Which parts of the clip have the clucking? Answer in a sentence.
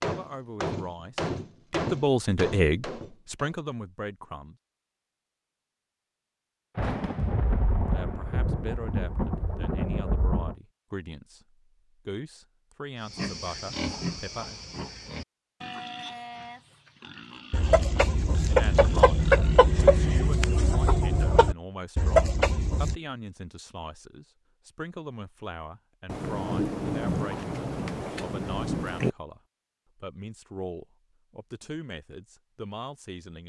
You can hear the clucking from 17.5 to 22.9 s.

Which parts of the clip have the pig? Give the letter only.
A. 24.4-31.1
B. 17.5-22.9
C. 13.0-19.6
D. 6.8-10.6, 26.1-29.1
C.